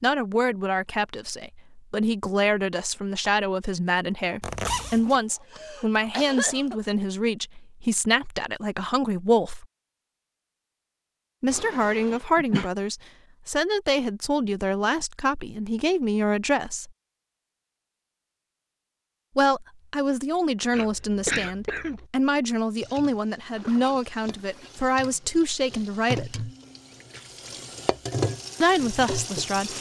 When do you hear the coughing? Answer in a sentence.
The coughing can be heard from 5.0 to 6.8 s, from 11.5 to 12.7 s and from 20.7 to 22.1 s.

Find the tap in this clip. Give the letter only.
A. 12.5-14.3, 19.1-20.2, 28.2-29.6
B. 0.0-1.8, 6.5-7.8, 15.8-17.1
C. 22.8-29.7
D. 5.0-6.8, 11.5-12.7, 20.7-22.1
C.